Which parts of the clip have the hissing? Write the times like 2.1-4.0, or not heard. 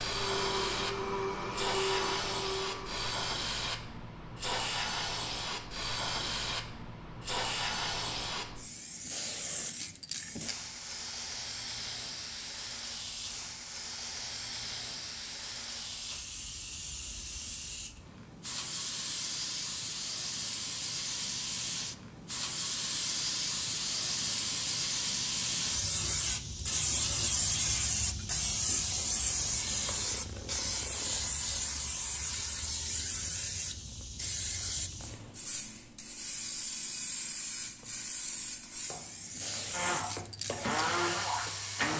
0.0-41.9.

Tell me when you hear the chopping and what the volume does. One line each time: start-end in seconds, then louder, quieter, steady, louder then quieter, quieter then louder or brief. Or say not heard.
not heard.